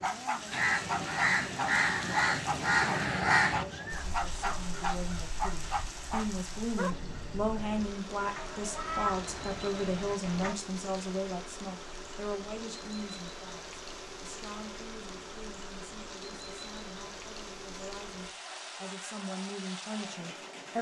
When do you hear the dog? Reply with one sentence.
You can hear the dog from 0.0 to 7.0 s.